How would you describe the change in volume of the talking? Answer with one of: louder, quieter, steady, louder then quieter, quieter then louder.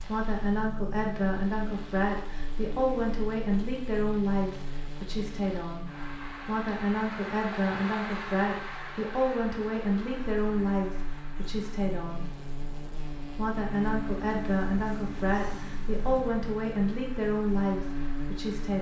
steady.